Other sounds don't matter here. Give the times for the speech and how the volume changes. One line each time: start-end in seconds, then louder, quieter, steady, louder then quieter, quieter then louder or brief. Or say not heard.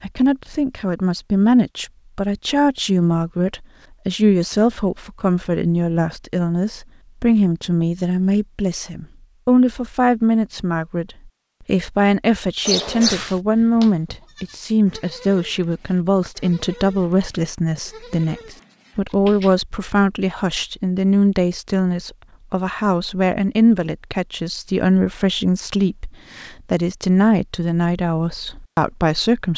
0.0-29.5 steady.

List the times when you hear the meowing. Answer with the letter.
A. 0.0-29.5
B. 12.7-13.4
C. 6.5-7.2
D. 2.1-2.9
B.